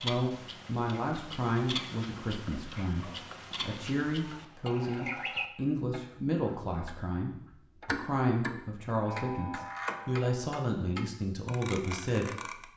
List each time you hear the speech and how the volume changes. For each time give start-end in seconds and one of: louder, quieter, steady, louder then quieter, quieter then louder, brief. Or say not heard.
0.0-12.7 steady.